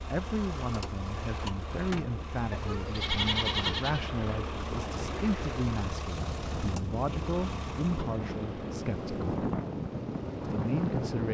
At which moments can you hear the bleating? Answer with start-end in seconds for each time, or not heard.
2.5-4.1.